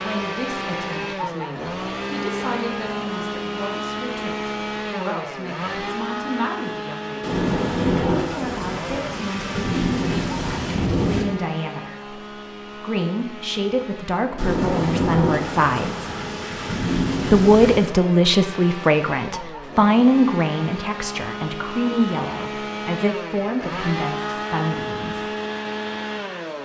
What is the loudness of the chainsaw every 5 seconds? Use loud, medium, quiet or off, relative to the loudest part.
loud, loud, medium, medium, loud, loud.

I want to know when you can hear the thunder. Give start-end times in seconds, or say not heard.
7.2-11.2, 14.3-17.9.